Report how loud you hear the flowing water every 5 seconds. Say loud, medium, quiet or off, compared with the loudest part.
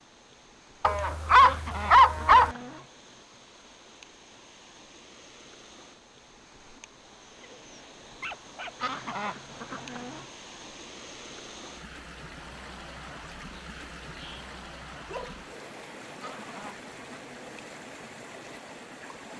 medium, medium, loud, loud.